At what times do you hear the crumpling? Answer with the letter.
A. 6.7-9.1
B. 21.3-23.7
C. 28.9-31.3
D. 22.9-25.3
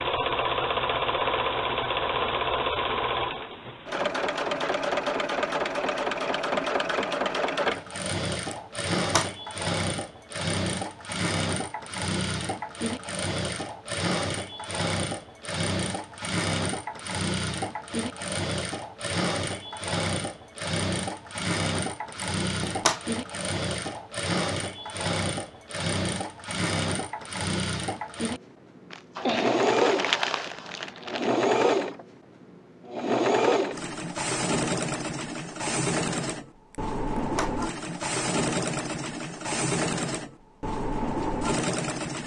C.